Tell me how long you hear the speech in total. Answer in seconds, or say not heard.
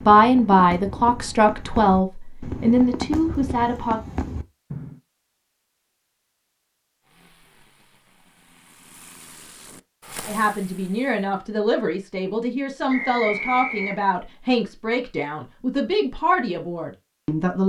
11 s.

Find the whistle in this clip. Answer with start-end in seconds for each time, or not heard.
12.8-14.0.